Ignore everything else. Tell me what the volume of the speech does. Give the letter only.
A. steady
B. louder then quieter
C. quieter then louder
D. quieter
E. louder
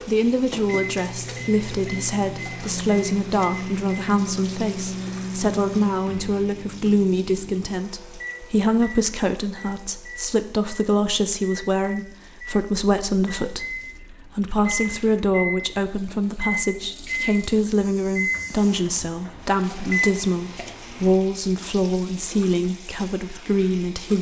A.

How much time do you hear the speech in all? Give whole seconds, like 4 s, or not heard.
24 s.